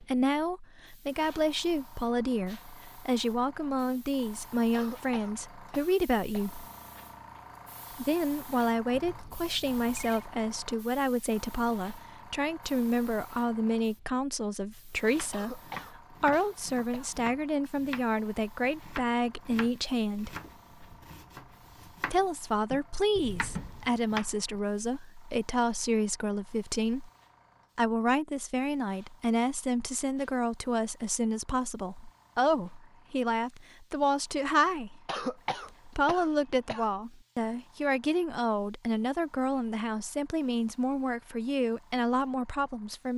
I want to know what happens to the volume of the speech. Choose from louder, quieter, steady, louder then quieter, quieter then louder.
steady.